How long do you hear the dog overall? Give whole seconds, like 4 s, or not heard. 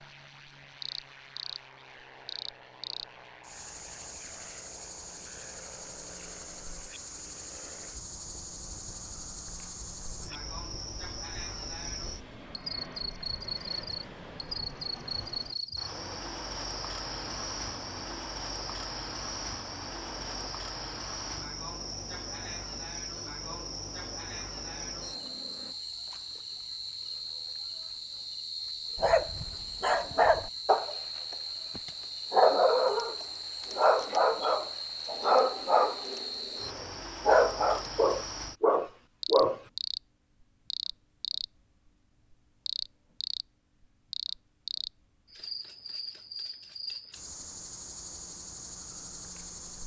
11 s.